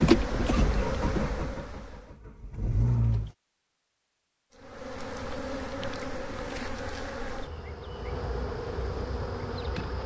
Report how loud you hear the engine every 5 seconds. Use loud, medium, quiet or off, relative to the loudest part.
loud, off.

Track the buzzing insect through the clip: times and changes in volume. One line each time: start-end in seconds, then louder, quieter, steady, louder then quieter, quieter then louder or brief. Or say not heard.
0.0-2.1 brief
4.5-10.0 steady.